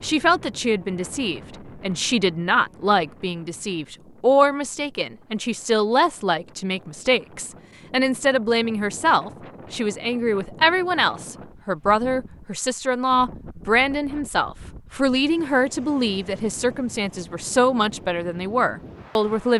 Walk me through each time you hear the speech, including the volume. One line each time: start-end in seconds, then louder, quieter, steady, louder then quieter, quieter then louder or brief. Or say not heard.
0.0-19.5 steady.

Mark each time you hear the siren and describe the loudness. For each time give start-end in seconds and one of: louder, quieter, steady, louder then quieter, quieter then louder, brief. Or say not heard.
not heard.